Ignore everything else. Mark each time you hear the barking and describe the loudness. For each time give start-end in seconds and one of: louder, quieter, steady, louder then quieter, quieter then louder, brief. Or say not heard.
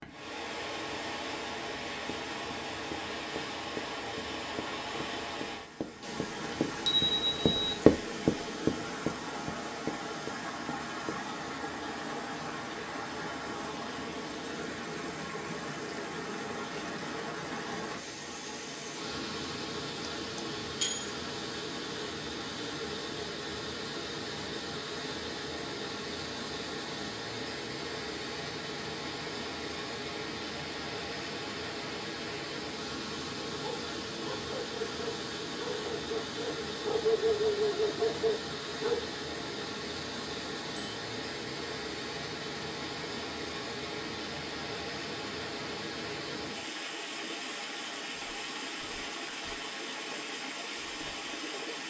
33.5-39.1 louder.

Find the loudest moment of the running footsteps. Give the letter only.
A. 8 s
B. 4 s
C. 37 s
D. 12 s
A.